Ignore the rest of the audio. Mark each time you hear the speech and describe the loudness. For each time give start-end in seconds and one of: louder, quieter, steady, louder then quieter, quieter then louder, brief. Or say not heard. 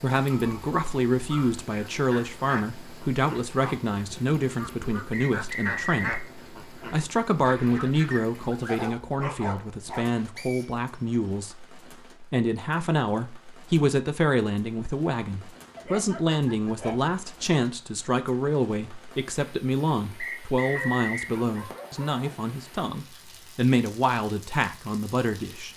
0.0-25.7 steady.